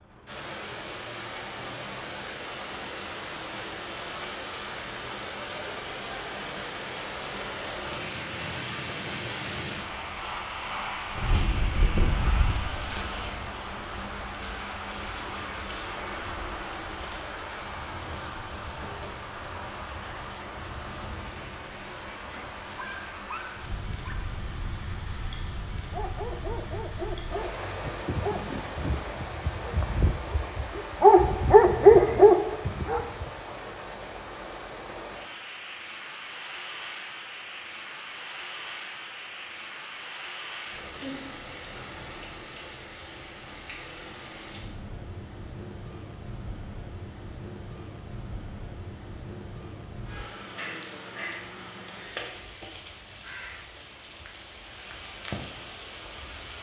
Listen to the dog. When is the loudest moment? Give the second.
32 s.